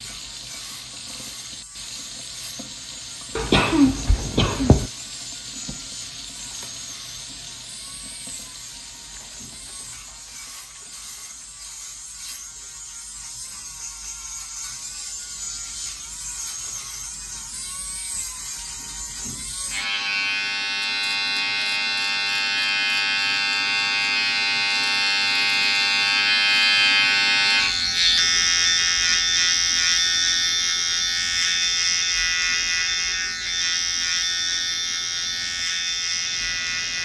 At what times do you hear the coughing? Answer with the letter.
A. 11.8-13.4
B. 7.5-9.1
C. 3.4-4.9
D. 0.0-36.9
C.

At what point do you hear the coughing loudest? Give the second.
4 s.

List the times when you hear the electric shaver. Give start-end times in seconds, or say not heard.
0.0-36.9.